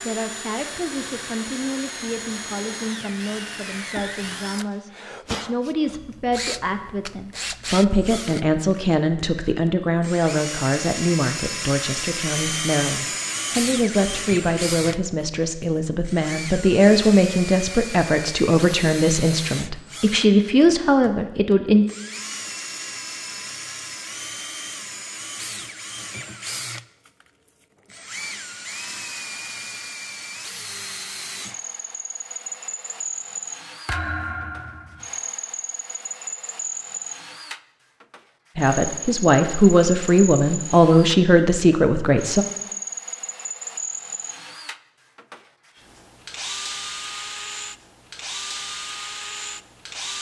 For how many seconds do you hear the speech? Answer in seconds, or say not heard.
26 s.